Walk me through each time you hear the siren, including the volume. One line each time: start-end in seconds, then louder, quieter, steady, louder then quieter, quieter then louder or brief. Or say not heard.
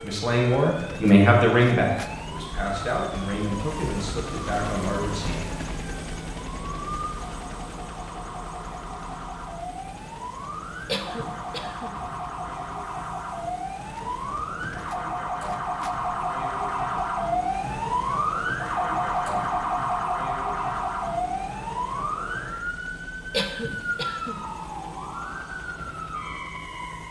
0.0-27.0 louder then quieter.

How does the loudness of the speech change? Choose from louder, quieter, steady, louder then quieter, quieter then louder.
quieter.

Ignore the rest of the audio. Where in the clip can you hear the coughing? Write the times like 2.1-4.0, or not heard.
10.8-11.9, 23.3-24.4.